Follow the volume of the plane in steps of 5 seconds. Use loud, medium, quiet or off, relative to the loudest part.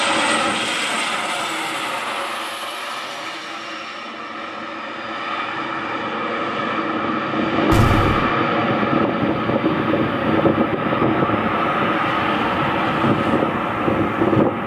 medium, loud, loud.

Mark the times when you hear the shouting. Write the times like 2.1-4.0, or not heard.
not heard.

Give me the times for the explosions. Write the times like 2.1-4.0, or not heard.
7.7-8.3.